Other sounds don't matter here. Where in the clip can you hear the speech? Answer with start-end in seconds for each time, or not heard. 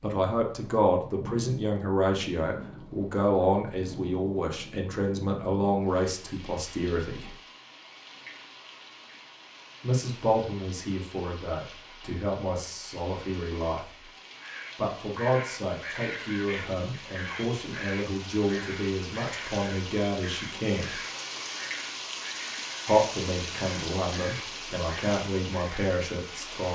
0.0-7.3, 9.8-14.1, 14.8-21.0, 22.9-26.7.